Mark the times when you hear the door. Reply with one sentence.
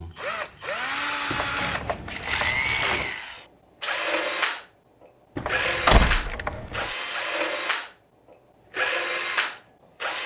You can hear the door from 1.6 to 3.2 s and from 5.8 to 6.8 s.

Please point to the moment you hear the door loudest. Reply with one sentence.
The loudest moment of the door is at 6 seconds.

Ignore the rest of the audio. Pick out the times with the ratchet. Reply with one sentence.
You can hear the ratchet from 1.3 to 3.1 s and from 5.3 to 7.0 s.